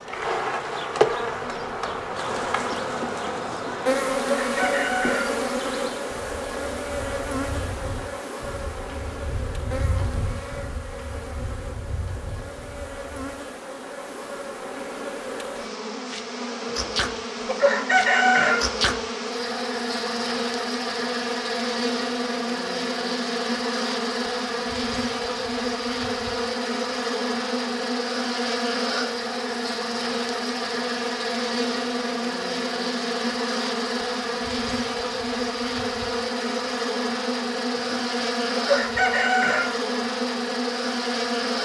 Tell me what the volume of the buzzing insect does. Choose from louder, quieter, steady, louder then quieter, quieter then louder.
quieter then louder.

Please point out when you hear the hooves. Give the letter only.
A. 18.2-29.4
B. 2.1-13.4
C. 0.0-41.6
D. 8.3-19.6
B.